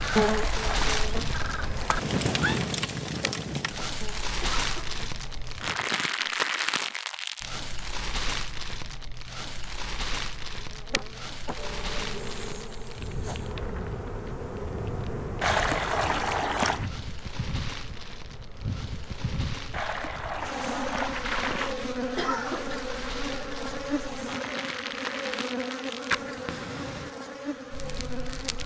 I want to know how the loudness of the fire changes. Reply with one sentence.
The volume of the fire goes down, then up.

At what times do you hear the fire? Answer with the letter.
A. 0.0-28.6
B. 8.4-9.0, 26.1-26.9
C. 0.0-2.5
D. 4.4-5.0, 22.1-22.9
A.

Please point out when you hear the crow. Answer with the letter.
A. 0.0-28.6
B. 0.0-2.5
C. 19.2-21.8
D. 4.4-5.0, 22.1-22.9
B.